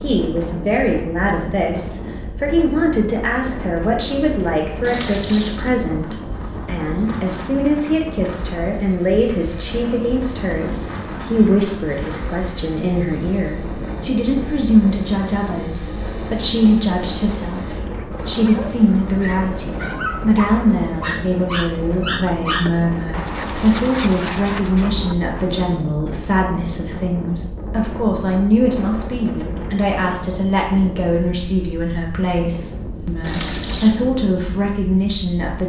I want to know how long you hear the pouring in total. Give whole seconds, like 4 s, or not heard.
2 s.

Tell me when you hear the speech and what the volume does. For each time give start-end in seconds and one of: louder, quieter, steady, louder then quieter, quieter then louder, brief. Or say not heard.
0.0-35.6 steady.